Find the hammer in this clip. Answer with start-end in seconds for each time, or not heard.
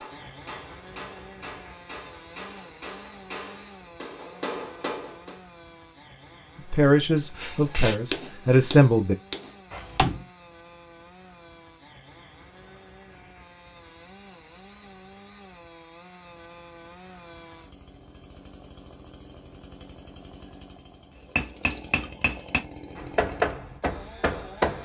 0.0-5.4, 7.3-10.2, 21.4-24.8.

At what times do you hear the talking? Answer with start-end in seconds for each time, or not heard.
6.7-9.2.